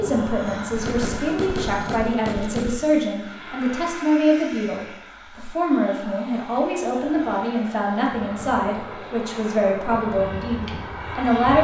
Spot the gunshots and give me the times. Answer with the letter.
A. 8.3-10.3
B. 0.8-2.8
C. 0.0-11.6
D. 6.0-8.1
B.